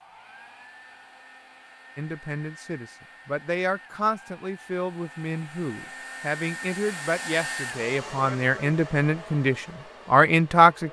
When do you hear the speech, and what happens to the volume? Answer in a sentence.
You can hear the speech from 1.9 to 10.8 s, getting louder.